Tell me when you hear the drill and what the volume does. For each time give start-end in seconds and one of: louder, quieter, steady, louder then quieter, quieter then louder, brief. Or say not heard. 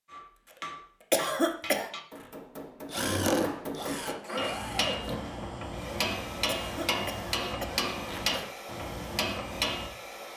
2.9-10.3 quieter.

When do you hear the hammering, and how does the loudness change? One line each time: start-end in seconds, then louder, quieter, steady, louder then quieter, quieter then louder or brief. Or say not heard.
0.1-9.9 louder.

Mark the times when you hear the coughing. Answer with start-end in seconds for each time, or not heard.
1.1-1.9, 6.5-7.8.